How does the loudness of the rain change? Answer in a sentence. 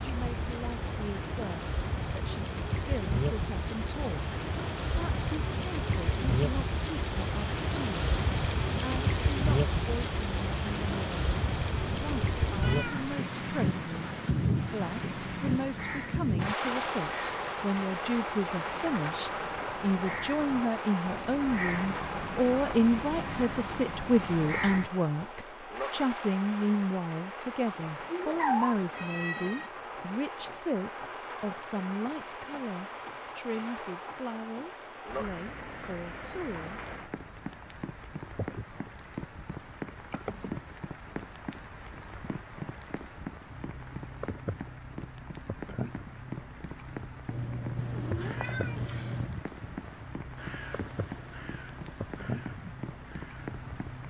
The volume of the rain goes down.